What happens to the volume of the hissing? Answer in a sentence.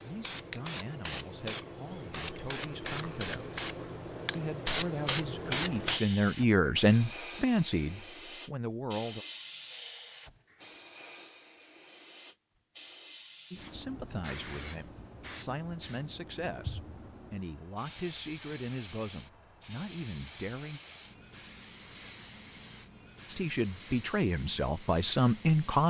The volume of the hissing goes down.